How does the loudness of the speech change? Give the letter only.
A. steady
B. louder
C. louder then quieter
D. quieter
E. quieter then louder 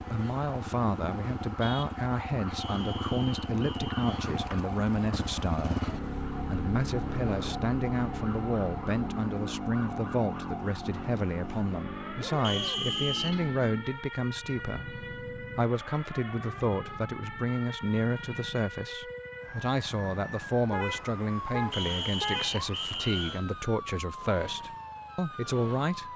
A.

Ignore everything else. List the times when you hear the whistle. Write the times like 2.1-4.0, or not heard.
2.6-4.0, 12.4-13.4, 21.7-23.4.